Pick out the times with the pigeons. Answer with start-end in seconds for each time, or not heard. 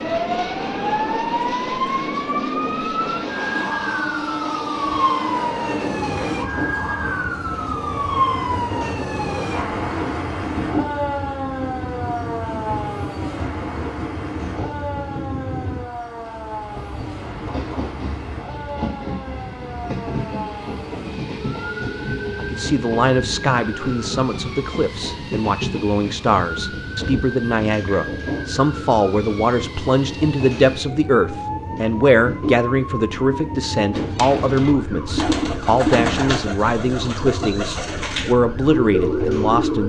33.9-39.8.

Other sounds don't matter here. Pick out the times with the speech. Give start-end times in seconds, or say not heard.
22.4-39.8.